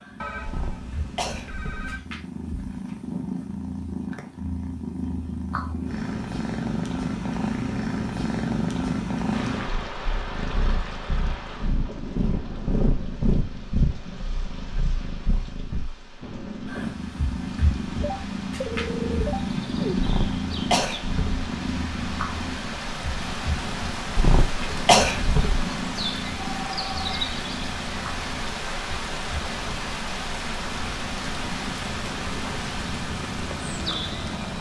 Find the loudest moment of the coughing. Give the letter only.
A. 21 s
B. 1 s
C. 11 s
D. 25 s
D.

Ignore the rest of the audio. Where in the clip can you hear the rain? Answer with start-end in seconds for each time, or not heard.
9.3-34.5.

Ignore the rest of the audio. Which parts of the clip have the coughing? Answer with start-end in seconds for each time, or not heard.
0.5-1.9, 19.9-21.4, 24.1-25.6.